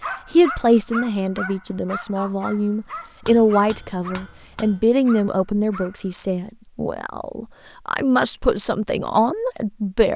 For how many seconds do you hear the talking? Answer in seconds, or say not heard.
10 s.